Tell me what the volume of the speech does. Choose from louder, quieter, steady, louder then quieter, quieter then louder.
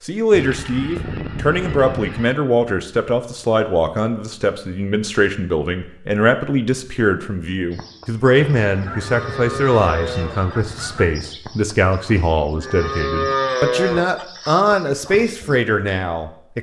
steady.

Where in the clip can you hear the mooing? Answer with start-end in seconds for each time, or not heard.
7.7-15.6.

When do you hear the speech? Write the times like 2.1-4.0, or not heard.
0.1-16.5.